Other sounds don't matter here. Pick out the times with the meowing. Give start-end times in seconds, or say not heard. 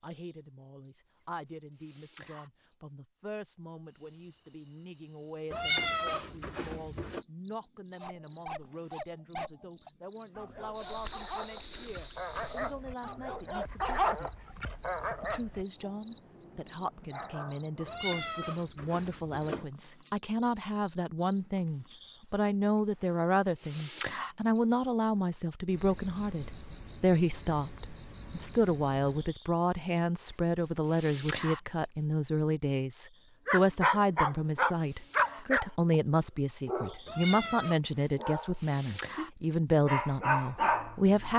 5.5-7.2, 17.9-19.6, 37.0-37.8.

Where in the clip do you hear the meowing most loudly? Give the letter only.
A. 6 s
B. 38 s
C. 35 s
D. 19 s
A.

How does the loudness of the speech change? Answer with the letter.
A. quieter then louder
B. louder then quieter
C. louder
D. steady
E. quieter
C.